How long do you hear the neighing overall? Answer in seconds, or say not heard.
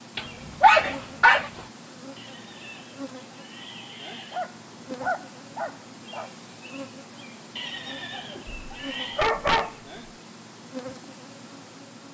4 s.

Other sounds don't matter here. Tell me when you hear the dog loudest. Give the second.
1 s.